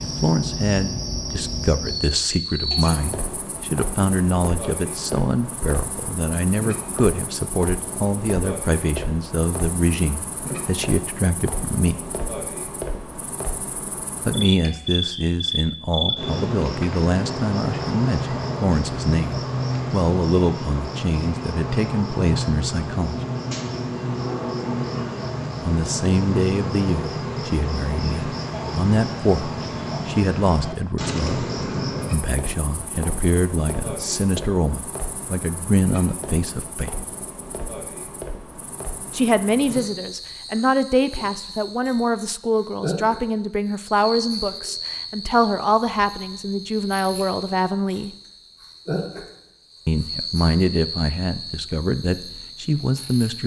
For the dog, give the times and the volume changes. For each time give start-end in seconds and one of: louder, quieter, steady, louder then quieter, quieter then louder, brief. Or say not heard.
not heard.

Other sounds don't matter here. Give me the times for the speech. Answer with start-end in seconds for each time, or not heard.
0.0-12.1, 14.2-23.1, 25.6-37.0, 39.1-48.1, 49.9-53.4.